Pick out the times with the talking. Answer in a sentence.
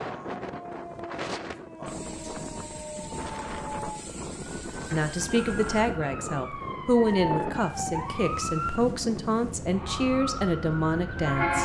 You can hear the talking from 4.9 to 11.6 s.